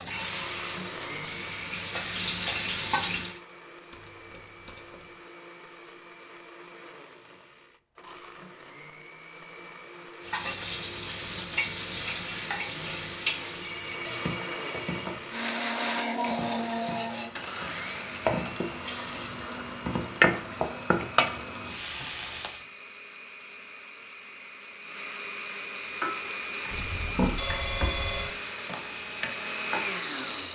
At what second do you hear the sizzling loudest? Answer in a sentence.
The volume of the sizzling peaks at 21 seconds.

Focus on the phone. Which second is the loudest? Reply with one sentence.
The loudest moment of the phone is at 27 seconds.